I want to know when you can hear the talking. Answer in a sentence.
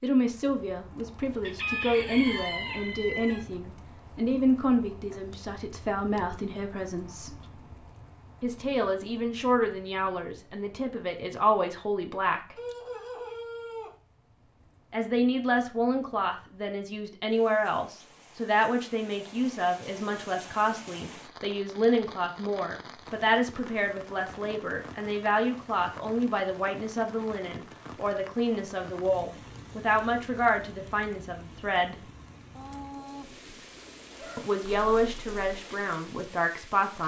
The talking can be heard from 0.0 to 7.4 s, from 8.4 to 12.6 s, from 14.9 to 32.0 s and from 34.4 to 37.0 s.